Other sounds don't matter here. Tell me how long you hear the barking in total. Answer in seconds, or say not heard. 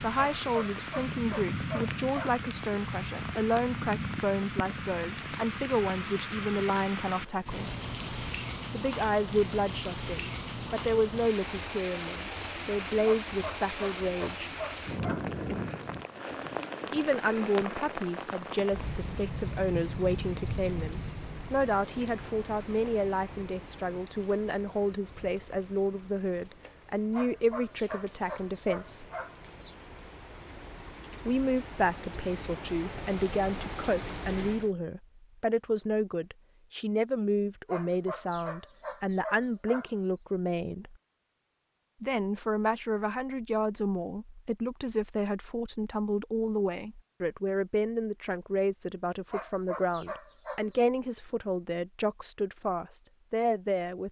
11 s.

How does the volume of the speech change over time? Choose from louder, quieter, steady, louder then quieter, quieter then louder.
steady.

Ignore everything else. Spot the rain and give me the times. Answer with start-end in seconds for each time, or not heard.
0.0-34.7.